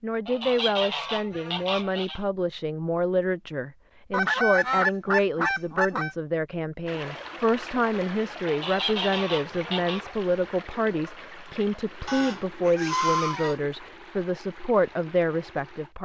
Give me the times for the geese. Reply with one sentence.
The geese can be heard from 0.2 to 2.2 s, from 4.1 to 6.2 s, from 8.4 to 10.0 s and from 12.1 to 13.6 s.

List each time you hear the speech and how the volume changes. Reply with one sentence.
You can hear the speech from 0.0 to 16.0 s, at a steady volume.